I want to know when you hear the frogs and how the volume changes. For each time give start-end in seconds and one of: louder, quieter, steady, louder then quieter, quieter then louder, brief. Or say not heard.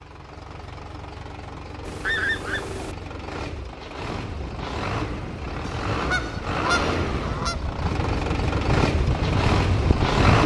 not heard.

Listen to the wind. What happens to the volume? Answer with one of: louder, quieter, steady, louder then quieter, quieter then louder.
louder.